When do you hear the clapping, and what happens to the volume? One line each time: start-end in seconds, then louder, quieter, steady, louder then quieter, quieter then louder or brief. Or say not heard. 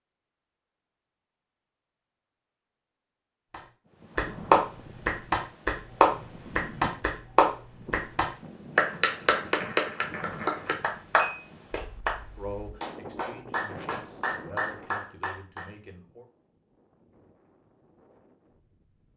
3.5-12.2 quieter
12.8-15.7 brief.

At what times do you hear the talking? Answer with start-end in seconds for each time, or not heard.
12.3-16.2.